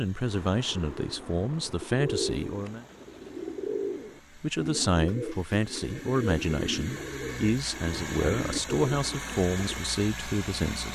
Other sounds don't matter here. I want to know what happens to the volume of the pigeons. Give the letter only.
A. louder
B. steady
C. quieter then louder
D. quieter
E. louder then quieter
B.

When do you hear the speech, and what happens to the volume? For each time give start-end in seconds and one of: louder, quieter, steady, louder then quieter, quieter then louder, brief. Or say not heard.
0.0-2.9 brief
4.3-10.9 steady.